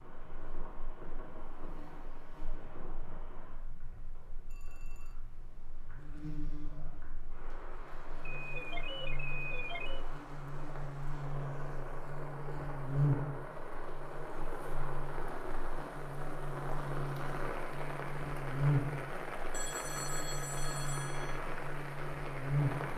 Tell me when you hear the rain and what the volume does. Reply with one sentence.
You can hear the rain from 0.0 to 22.9 s, getting louder.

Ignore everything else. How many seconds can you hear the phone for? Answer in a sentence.
The phone can be heard for 4 seconds in total.